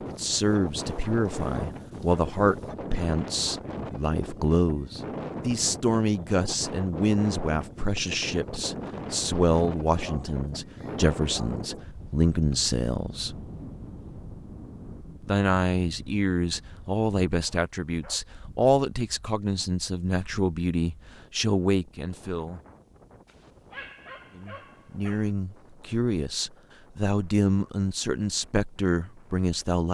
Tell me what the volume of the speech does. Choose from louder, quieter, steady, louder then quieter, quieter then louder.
steady.